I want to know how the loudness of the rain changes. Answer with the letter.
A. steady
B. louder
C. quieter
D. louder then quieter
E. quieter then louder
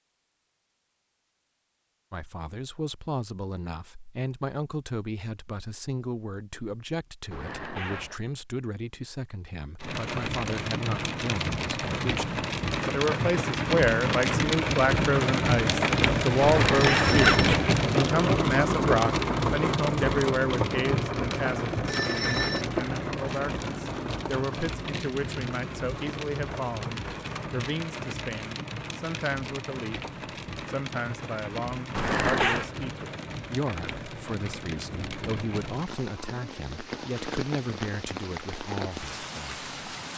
C.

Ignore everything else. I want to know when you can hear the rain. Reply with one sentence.
You can hear the rain from 9.8 to 40.1 s.